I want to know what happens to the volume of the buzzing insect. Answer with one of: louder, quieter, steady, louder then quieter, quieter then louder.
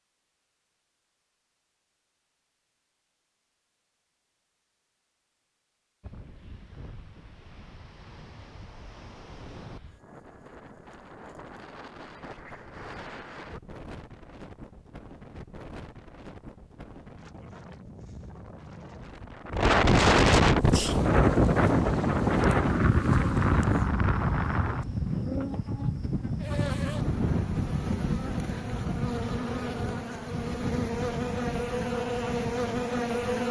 louder.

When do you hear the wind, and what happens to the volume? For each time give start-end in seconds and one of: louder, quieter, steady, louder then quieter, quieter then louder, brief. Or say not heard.
6.0-33.4 louder then quieter.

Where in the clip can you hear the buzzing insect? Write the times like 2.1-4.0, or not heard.
20.4-33.4.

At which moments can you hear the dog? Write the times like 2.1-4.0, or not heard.
not heard.